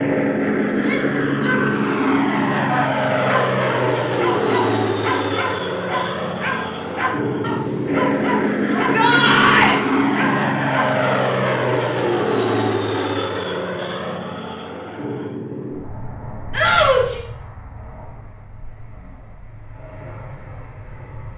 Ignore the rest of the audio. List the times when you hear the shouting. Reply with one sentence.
The shouting can be heard from 0.7 to 2.9 s, from 8.7 to 9.8 s and from 16.5 to 17.2 s.